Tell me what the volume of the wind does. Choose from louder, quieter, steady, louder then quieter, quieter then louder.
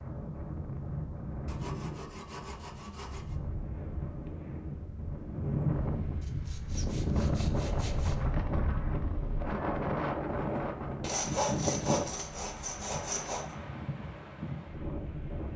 louder then quieter.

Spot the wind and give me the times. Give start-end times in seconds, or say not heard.
0.0-15.5.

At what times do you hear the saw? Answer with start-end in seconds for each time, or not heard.
1.4-3.4, 6.2-8.2, 11.0-13.5.